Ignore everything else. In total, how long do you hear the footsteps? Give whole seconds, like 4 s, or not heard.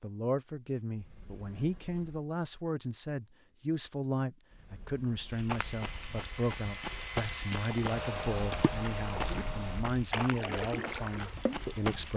7 s.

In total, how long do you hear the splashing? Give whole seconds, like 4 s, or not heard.
4 s.